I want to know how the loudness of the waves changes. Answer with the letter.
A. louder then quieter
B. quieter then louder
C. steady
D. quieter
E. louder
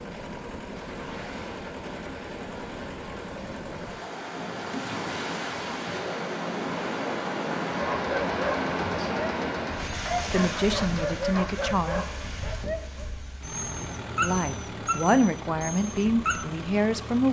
A.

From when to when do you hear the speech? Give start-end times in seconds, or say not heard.
10.2-12.1, 14.2-17.2.